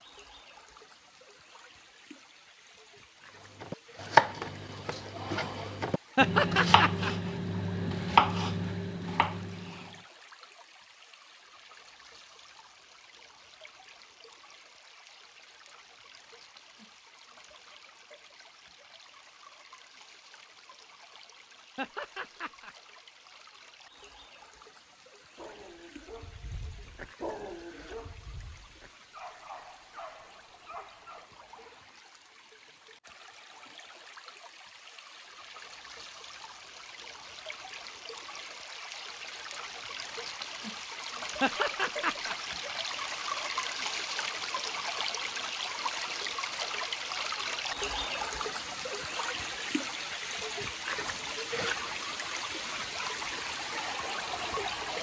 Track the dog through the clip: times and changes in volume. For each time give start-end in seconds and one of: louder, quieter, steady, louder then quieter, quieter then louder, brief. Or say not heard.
25.4-31.3 louder then quieter.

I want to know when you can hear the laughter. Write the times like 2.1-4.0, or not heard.
6.2-7.1, 21.8-22.8, 41.4-42.4.